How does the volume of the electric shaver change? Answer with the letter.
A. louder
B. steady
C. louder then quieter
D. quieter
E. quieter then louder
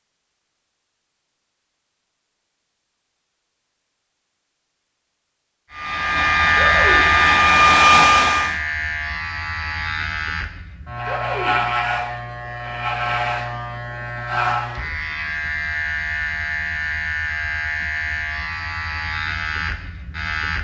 D.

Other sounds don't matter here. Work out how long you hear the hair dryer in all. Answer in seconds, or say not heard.
3 s.